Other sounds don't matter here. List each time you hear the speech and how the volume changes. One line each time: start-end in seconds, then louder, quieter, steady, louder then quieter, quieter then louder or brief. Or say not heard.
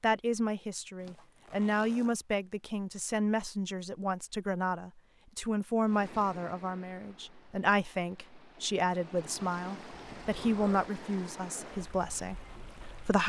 0.0-13.2 steady.